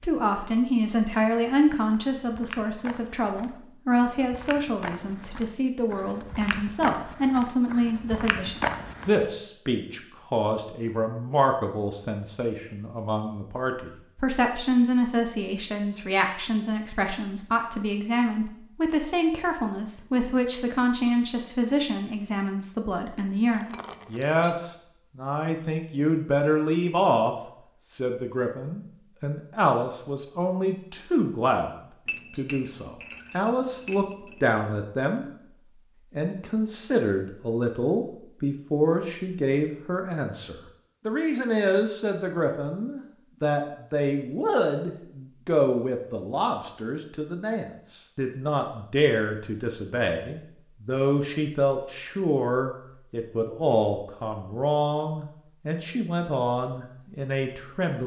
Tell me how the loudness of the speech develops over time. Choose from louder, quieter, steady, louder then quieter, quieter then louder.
steady.